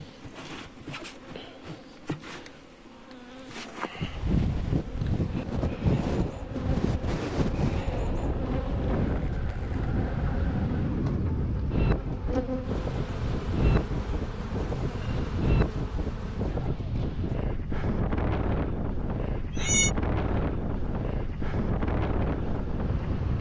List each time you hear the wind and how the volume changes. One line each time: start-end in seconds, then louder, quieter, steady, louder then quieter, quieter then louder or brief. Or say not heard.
4.0-23.3 steady.